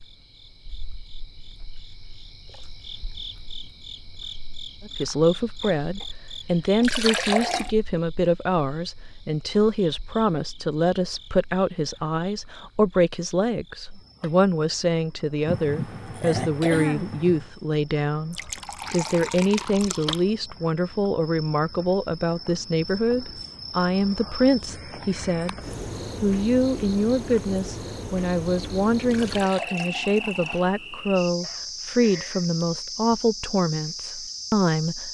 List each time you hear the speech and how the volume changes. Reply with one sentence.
You can hear the speech from 4.8 to 25.6 s, at a steady volume; and from 26.2 to 35.1 s, at a steady volume.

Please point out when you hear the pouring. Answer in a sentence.
You can hear the pouring from 6.8 to 7.7 s, from 18.3 to 20.2 s and from 29.1 to 30.7 s.